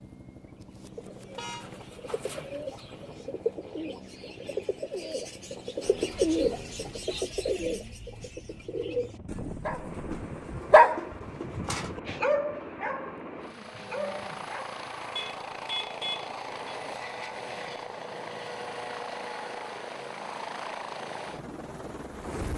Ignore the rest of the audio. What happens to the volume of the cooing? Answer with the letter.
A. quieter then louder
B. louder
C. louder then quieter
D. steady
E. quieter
C.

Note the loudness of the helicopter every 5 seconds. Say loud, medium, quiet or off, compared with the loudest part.
medium, medium, loud, loud, loud.